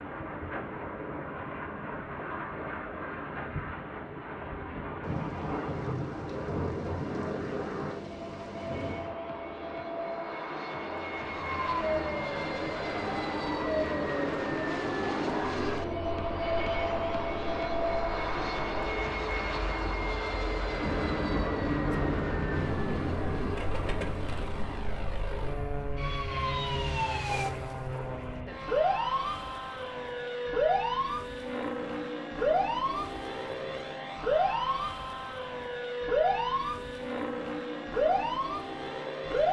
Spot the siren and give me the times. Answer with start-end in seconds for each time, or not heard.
11.2-39.4.